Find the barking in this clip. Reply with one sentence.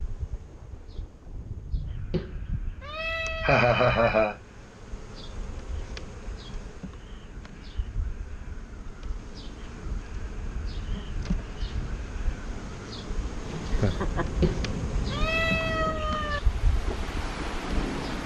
You can't hear the barking here.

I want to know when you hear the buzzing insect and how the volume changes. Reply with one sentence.
You can hear the buzzing insect from 0.0 to 18.2 s, getting louder.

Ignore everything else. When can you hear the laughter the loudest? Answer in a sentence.
The volume of the laughter peaks at 4 seconds.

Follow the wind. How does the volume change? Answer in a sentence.
The volume of the wind goes up.